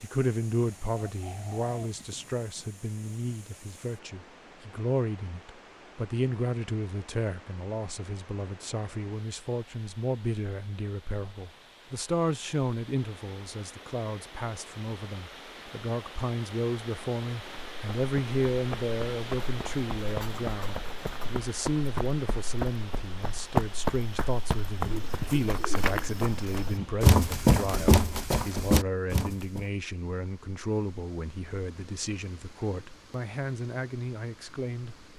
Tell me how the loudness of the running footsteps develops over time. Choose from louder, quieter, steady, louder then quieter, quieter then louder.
louder.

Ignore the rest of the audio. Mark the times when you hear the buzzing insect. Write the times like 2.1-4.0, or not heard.
not heard.